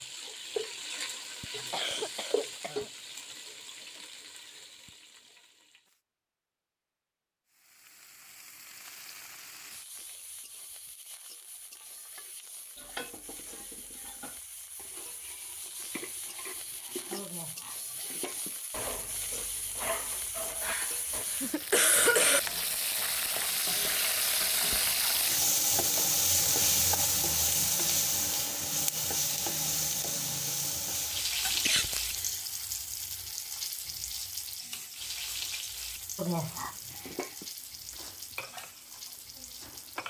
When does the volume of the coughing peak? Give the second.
22 s.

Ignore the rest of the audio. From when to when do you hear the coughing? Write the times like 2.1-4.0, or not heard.
1.6-2.9, 20.6-22.4, 31.4-32.5.